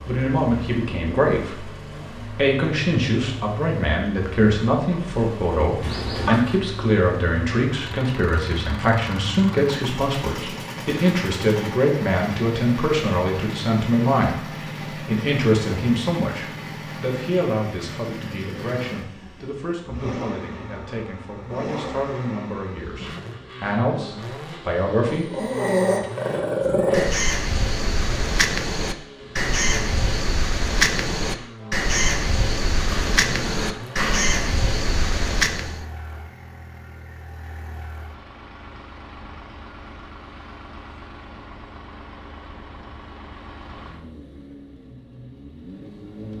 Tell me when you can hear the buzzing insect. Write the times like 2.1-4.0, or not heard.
not heard.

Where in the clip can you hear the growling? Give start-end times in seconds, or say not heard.
5.8-6.6, 25.1-27.1, 32.9-34.4.